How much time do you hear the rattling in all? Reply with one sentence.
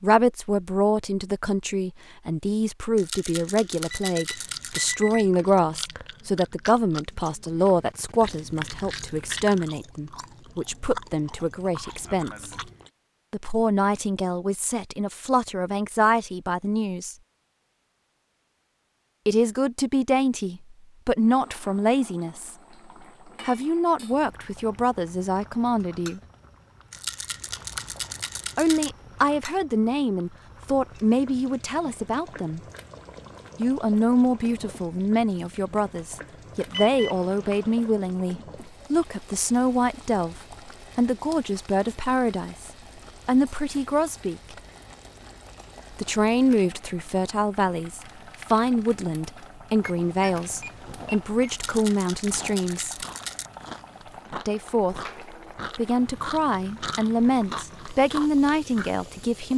The rattling can be heard for 6 seconds in total.